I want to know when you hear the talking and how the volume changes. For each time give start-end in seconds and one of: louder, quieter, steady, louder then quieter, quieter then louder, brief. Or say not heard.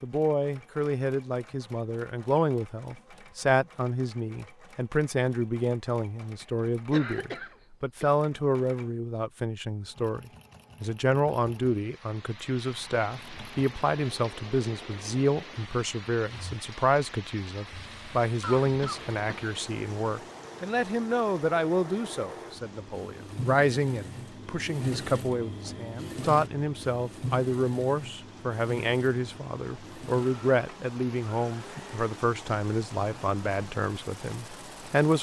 0.0-35.1 steady.